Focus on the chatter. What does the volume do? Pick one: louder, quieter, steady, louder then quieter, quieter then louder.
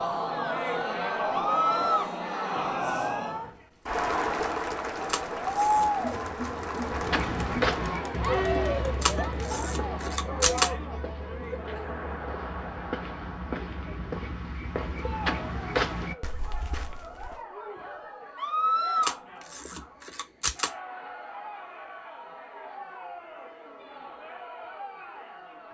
quieter.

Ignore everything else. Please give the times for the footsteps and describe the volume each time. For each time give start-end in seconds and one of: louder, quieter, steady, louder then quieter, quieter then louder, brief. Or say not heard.
6.8-17.4 quieter then louder.